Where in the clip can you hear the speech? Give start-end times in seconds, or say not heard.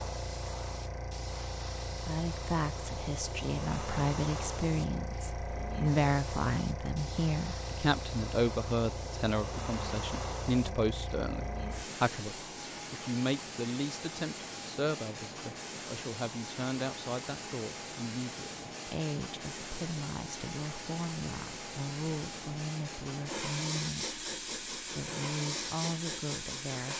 1.9-26.9.